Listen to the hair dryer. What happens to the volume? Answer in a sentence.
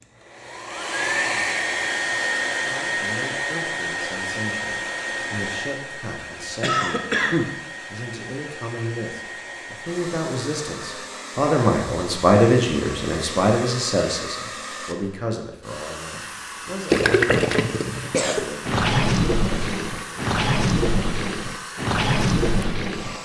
The volume of the hair dryer goes down.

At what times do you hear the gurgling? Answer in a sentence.
The gurgling can be heard from 16.9 to 23.1 s.